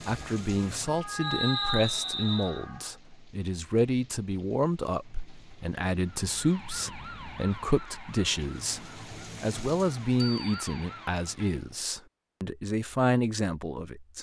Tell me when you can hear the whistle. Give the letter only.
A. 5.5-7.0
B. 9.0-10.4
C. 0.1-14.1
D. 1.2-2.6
D.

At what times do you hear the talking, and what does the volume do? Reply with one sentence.
The talking can be heard from 0.1 to 14.1 s, at a steady volume.